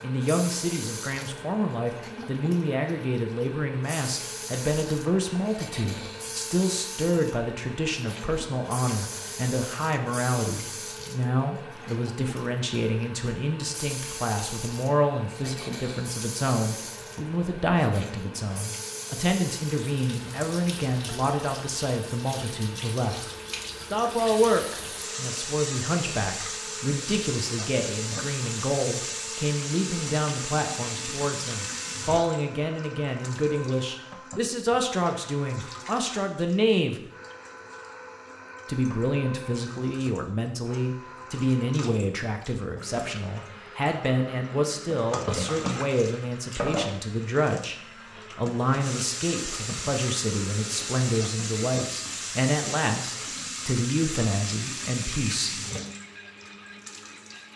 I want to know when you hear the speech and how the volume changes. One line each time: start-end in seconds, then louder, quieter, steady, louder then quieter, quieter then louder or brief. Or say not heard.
0.0-37.0 steady
38.6-55.6 steady.